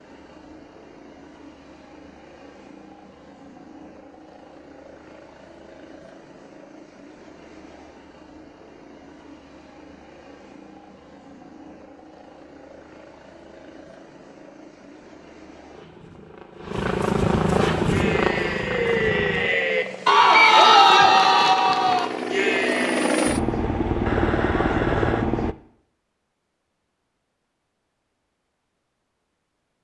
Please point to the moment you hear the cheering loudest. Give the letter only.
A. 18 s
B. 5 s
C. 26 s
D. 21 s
D.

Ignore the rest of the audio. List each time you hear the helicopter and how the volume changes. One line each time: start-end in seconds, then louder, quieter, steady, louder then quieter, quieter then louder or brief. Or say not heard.
0.0-25.6 louder.